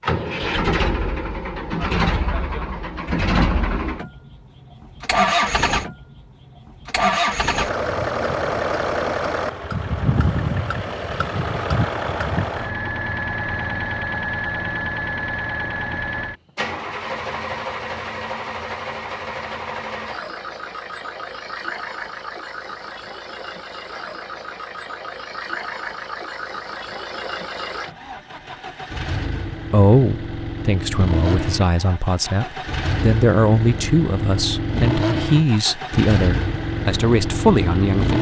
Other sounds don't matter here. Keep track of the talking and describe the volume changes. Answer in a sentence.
The volume of the talking goes up.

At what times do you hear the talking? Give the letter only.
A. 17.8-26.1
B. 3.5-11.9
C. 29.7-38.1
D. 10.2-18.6
C.